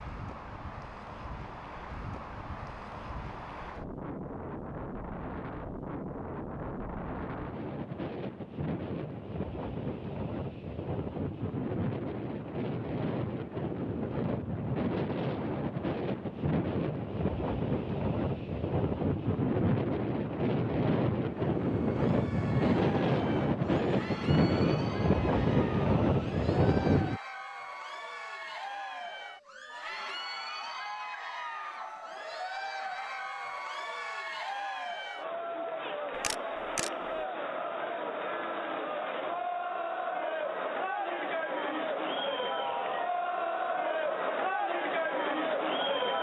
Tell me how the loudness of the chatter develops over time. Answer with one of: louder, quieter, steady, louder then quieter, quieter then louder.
louder.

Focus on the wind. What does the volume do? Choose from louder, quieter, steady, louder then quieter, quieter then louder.
louder.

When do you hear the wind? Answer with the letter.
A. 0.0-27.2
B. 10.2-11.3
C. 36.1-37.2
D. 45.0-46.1
A.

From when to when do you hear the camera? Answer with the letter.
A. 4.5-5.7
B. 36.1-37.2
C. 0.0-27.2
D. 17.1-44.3
B.